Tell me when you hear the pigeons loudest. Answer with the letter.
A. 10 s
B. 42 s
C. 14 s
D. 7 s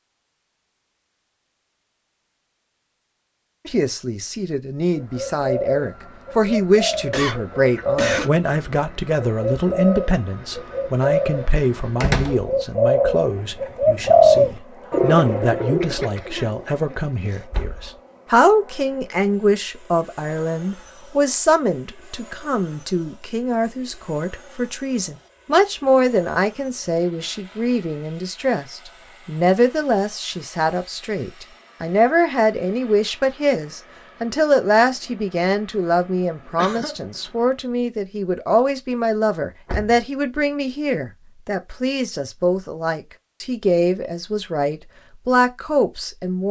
C.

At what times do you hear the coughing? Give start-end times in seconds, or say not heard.
6.9-8.3, 15.8-17.4, 36.5-37.0.